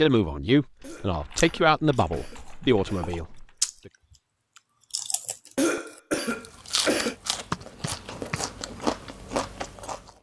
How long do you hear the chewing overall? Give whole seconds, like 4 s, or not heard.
9 s.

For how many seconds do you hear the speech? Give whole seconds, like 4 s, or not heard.
4 s.